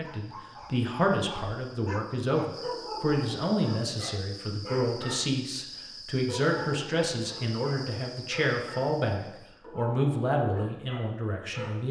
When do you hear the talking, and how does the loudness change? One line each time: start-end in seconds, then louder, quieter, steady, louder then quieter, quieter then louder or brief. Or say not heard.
0.0-11.8 steady.